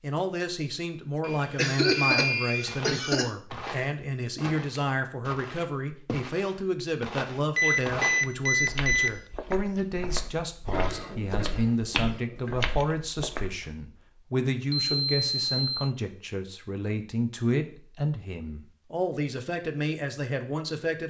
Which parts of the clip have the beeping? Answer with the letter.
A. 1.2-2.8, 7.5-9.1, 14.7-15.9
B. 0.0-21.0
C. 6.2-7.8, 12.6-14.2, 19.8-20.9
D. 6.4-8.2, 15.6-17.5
A.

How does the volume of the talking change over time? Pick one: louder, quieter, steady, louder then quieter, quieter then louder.
steady.